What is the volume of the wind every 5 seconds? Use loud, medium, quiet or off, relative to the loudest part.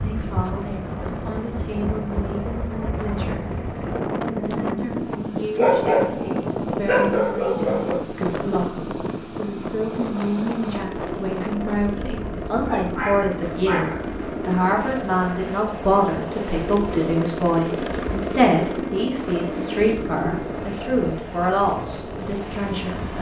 loud, loud, medium, medium, medium.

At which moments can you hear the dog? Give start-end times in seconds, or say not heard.
5.5-8.0, 12.6-14.1.